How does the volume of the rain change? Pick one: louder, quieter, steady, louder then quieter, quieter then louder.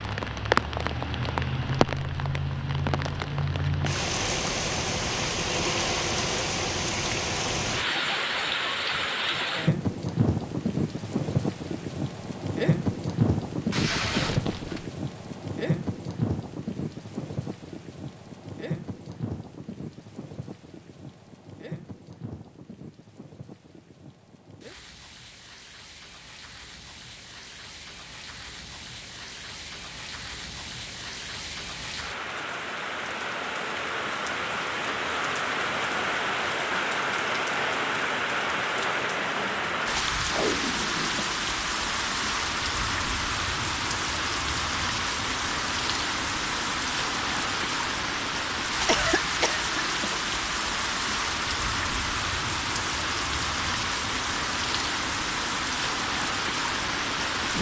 quieter then louder.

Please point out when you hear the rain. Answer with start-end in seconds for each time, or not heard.
0.0-57.5.